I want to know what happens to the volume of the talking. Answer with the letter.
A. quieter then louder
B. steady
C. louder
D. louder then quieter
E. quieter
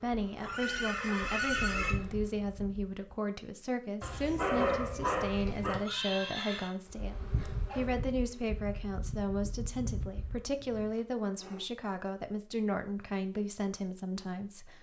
B.